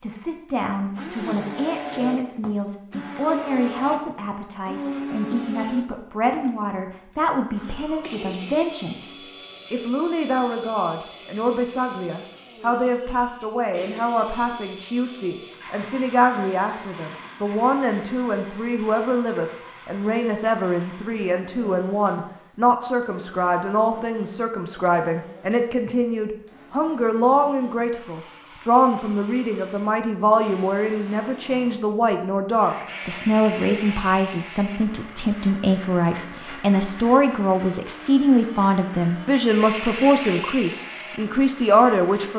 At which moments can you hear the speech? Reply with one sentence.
The speech can be heard from 0.0 to 42.3 s.